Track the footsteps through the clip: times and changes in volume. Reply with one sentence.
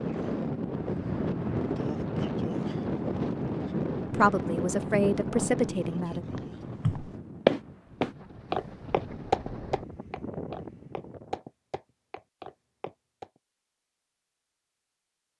The footsteps can be heard from 6.2 to 13.2 s, getting quieter.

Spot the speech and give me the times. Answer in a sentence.
The speech can be heard from 4.1 to 6.2 s.